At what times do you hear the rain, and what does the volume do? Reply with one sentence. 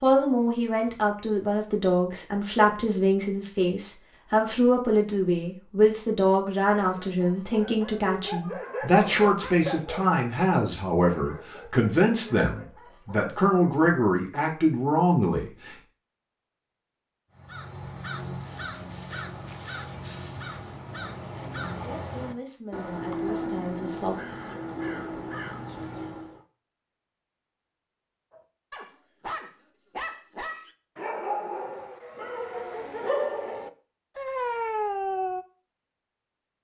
You can't hear the rain here.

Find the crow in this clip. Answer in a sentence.
The crow can be heard from 17.4 to 26.4 s.